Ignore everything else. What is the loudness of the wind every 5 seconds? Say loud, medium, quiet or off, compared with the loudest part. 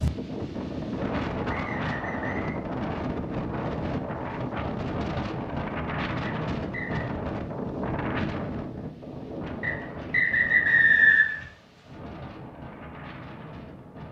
loud, loud, medium.